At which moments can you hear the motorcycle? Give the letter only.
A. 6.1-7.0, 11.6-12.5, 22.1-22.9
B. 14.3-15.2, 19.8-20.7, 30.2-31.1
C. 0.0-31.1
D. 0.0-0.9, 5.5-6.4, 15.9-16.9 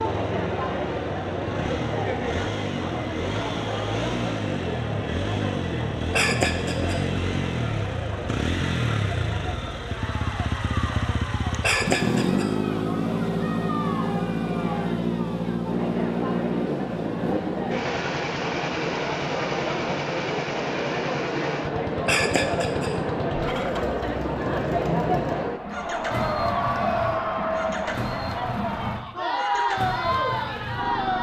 C.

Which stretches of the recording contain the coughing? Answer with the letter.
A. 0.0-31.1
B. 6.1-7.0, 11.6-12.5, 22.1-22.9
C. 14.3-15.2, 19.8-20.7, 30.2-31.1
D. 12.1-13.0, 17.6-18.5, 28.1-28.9
B.